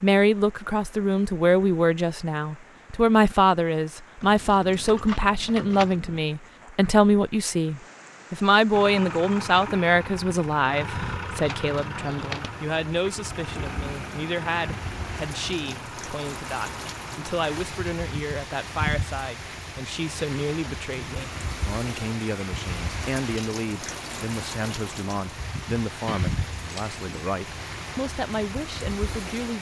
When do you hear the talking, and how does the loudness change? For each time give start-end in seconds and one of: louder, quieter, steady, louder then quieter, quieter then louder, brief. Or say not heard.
0.0-29.5 quieter.